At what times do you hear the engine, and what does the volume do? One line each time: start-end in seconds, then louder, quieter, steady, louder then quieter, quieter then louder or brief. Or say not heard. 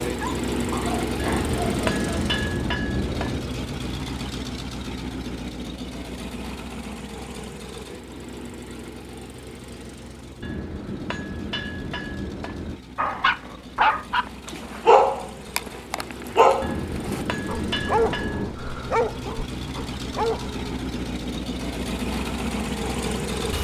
0.0-23.5 quieter then louder.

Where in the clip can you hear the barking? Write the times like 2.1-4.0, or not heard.
0.1-2.2, 12.9-20.8.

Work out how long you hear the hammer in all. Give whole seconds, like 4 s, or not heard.
7 s.